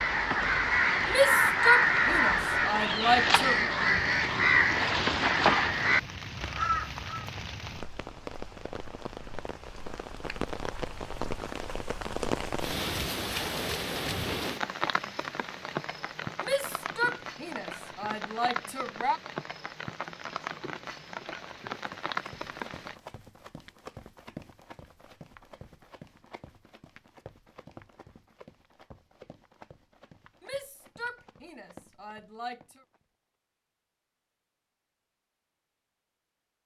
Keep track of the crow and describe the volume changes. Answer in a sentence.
The loudness of the crow stays about the same.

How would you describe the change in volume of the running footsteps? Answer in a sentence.
The volume of the running footsteps goes down.